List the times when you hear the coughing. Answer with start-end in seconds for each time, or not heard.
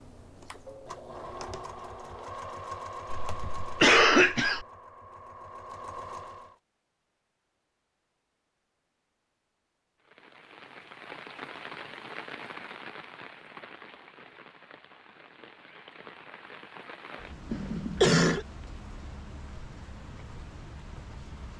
3.1-4.7, 17.5-18.4.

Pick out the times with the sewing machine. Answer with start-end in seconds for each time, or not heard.
0.0-6.5.